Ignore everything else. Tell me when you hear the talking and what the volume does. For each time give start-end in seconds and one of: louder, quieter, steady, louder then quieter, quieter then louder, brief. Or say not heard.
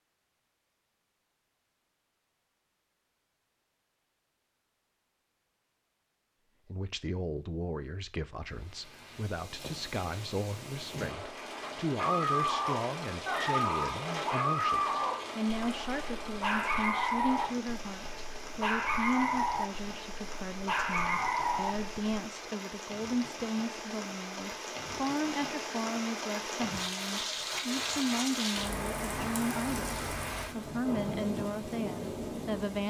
6.7-32.8 steady.